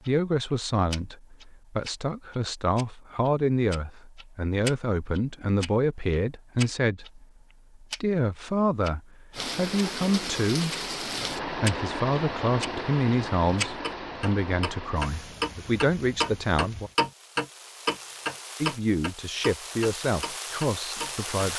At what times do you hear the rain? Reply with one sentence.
The rain can be heard from 9.3 to 21.5 s.